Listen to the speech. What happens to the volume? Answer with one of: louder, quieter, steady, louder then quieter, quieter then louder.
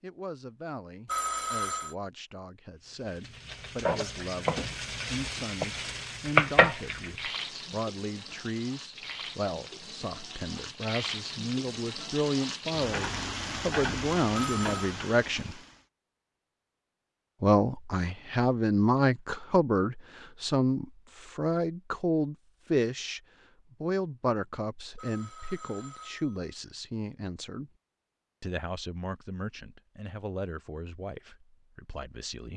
louder then quieter.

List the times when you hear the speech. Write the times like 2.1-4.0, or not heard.
0.0-15.6, 17.4-23.2, 23.8-27.7, 28.4-32.5.